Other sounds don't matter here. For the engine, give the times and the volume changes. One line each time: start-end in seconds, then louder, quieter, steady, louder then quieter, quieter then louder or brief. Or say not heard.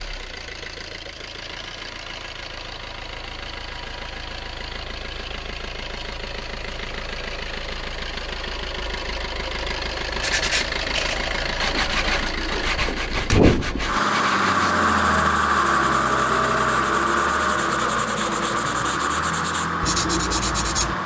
0.0-21.0 louder.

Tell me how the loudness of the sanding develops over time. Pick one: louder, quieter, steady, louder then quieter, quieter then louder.
quieter then louder.